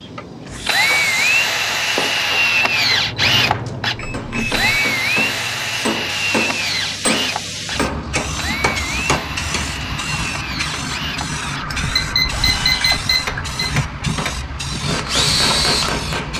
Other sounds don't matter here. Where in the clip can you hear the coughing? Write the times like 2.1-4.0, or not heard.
not heard.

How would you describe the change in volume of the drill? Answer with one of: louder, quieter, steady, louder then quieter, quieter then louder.
quieter then louder.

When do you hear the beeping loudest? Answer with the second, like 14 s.
13 s.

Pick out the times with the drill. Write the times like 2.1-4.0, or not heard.
0.0-15.9.